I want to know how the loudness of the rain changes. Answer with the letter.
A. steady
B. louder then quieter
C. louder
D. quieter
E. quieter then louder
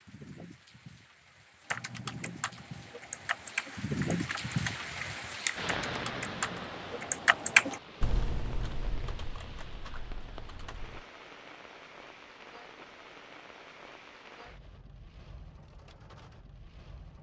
B.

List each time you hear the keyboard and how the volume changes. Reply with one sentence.
You can hear the keyboard from 1.7 to 11.1 s, getting louder then quieter.